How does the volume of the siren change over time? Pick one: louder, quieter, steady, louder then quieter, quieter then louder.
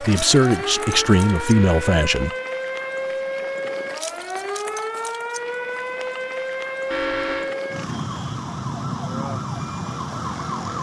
steady.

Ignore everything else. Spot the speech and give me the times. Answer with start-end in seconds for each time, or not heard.
0.0-2.3.